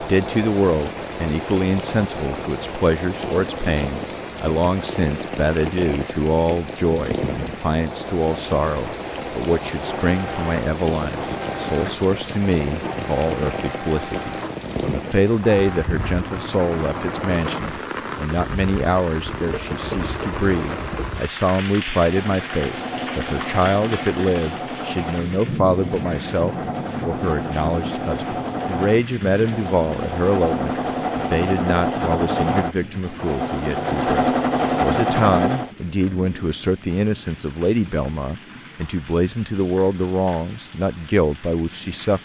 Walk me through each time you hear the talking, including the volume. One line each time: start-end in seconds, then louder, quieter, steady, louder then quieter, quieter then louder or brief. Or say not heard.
0.0-42.2 steady.